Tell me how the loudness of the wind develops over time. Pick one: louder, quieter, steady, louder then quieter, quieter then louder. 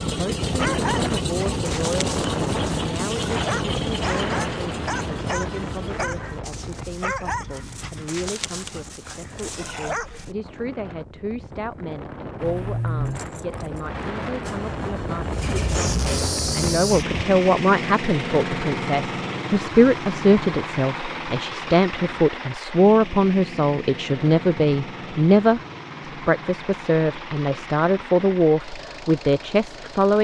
quieter then louder.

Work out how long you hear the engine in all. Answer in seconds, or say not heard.
28 s.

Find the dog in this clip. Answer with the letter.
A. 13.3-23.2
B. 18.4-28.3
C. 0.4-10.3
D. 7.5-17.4
C.